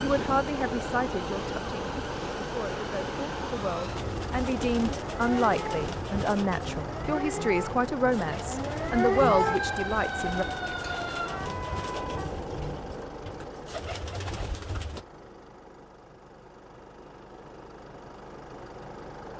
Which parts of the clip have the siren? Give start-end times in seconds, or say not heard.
0.0-12.3.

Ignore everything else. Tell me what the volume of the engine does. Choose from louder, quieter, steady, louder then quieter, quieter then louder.
quieter.